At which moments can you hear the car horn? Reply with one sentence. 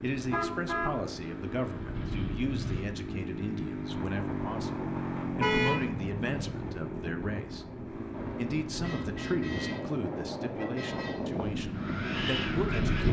The car horn can be heard from 0.1 to 0.9 s, from 5.4 to 5.8 s and from 8.8 to 11.2 s.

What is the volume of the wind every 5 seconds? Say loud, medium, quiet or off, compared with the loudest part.
medium, medium, loud.